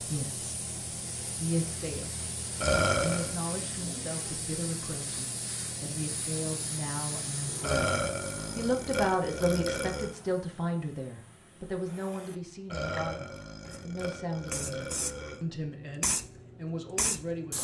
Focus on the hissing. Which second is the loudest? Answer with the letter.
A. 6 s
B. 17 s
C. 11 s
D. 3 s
B.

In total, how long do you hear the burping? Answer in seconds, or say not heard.
6 s.